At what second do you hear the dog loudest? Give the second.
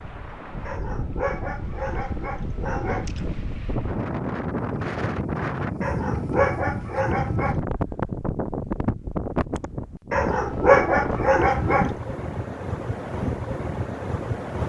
11 s.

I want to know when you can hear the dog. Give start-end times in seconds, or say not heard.
0.7-3.4, 5.8-7.6, 10.1-11.9.